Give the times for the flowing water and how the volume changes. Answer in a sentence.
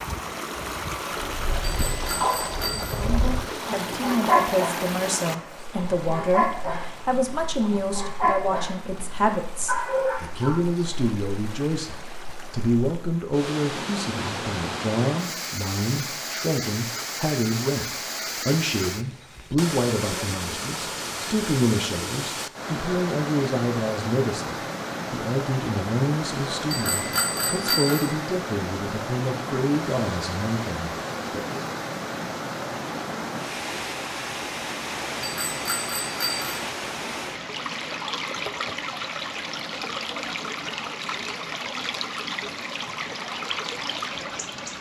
You can hear the flowing water from 0.0 to 44.7 s, at a steady volume.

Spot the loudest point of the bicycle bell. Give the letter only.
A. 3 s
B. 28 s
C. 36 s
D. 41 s
B.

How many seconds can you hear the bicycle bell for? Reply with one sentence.
The bicycle bell can be heard for 4 seconds in total.